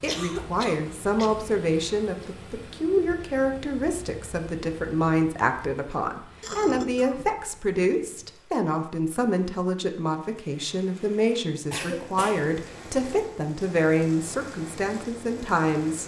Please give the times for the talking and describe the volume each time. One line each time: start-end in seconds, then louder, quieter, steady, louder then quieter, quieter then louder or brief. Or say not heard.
0.0-16.0 steady.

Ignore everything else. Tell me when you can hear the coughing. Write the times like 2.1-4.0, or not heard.
0.1-1.4, 6.4-8.3, 11.7-12.4.